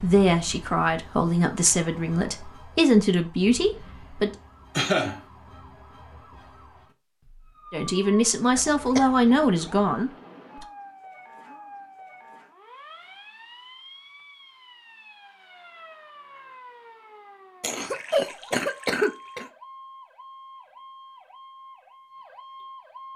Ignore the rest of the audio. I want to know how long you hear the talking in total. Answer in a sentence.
You can hear the talking for 7 seconds altogether.